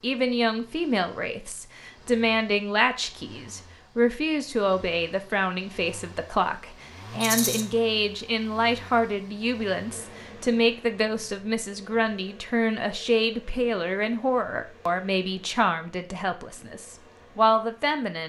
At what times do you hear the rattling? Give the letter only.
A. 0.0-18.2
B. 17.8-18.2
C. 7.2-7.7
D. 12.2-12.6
C.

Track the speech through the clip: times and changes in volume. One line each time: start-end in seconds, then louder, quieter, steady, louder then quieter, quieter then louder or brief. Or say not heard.
0.0-18.2 steady.